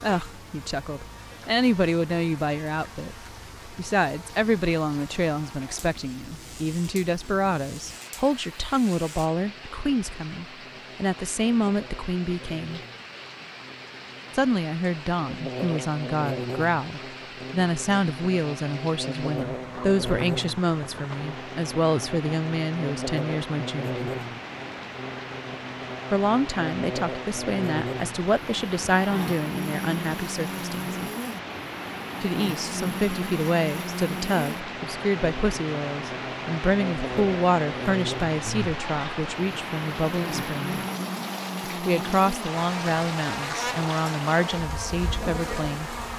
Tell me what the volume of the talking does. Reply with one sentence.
The volume of the talking stays about the same.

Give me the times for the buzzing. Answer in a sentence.
The buzzing can be heard from 0.0 to 46.1 s.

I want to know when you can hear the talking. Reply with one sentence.
You can hear the talking from 0.0 to 12.8 s, from 14.3 to 24.1 s, from 26.1 to 31.1 s, from 32.2 to 40.8 s and from 41.6 to 46.0 s.